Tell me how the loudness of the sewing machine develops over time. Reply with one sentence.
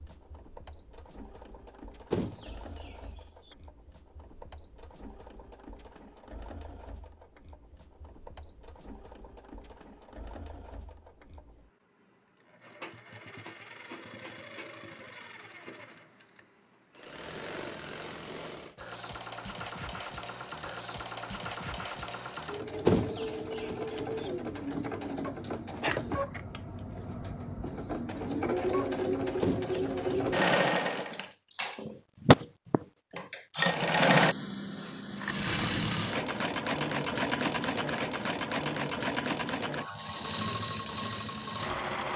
The loudness of the sewing machine goes up.